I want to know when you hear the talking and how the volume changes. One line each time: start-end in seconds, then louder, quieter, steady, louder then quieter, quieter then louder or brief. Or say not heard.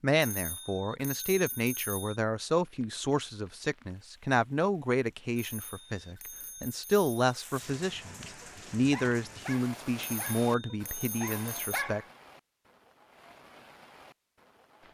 0.0-12.1 steady.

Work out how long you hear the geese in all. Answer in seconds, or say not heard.
not heard.